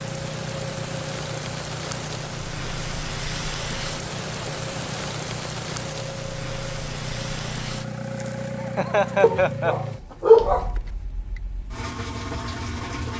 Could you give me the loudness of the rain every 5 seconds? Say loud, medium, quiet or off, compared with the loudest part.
loud, loud, off.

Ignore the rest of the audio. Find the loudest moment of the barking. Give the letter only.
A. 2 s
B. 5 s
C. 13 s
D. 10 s
D.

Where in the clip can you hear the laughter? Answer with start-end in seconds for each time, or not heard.
8.6-9.8.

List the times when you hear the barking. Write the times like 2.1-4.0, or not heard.
9.2-10.8.